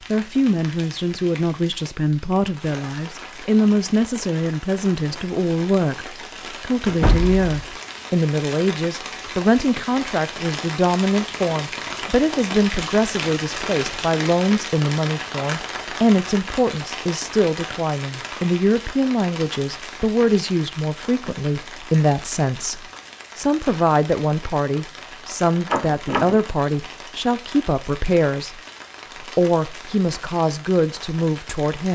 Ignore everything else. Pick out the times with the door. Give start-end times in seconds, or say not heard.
6.8-7.5, 25.7-26.4.